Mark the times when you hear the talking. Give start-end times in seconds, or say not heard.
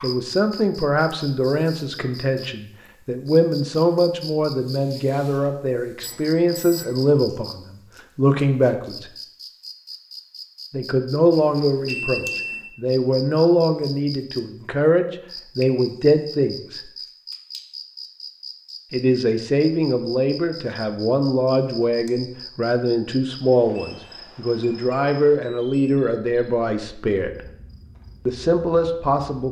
0.0-9.1, 10.7-16.9, 18.9-27.4, 28.2-29.4.